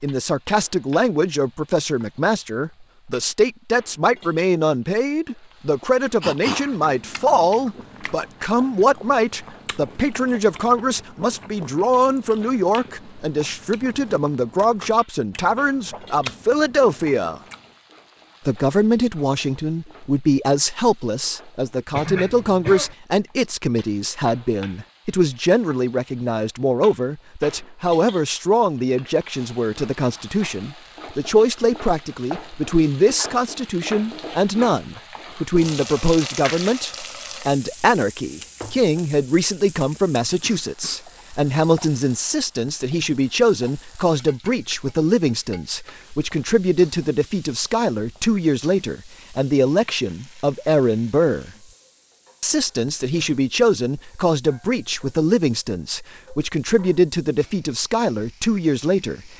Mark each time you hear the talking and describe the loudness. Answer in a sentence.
The talking can be heard from 0.0 to 17.4 s, at a steady volume; from 18.4 to 51.5 s, at a steady volume; and from 52.4 to 59.3 s, at a steady volume.